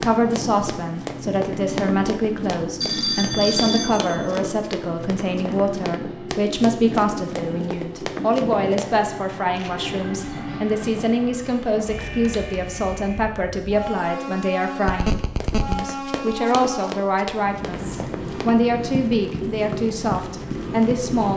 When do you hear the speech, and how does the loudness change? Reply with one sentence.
The speech can be heard from 0.0 to 21.3 s, at a steady volume.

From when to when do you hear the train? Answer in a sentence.
You can hear the train from 0.0 to 21.3 s.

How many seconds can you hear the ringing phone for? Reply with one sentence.
The ringing phone can be heard for 3 seconds in total.